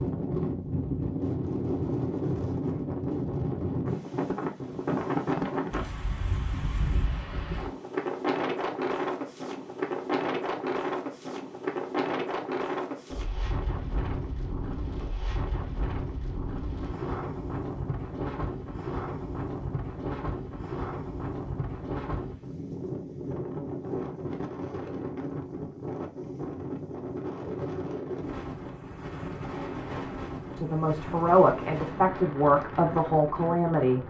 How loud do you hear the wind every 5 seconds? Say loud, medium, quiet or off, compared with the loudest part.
loud, loud, loud, medium, medium, medium, medium.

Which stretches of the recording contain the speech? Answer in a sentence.
You can hear the speech from 30.6 to 34.0 s.